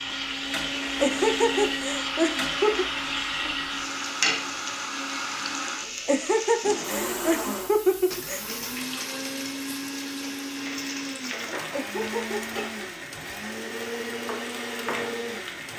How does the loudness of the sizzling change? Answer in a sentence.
The loudness of the sizzling goes down.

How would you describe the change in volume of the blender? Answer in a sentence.
The loudness of the blender stays about the same.